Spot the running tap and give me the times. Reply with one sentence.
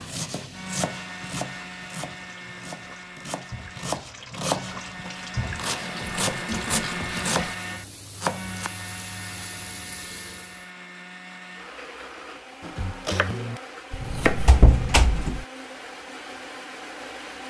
The running tap can be heard from 0.0 to 10.7 s.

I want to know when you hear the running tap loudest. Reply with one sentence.
The loudest moment of the running tap is at 7 seconds.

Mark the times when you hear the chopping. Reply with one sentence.
You can hear the chopping from 0.0 to 8.7 s and from 12.6 to 15.2 s.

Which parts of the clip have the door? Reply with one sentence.
The door can be heard from 13.9 to 15.4 s.